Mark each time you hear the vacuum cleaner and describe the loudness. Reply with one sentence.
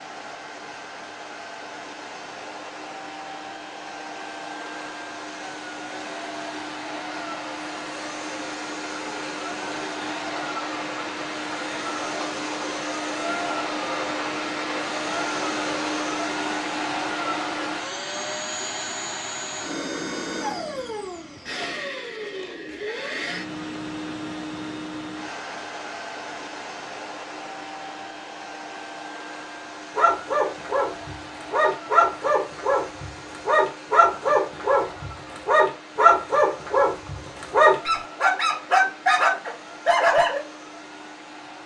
You can hear the vacuum cleaner from 0.0 to 41.6 s, getting louder then quieter.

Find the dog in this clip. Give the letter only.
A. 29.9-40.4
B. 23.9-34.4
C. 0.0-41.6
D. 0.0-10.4
A.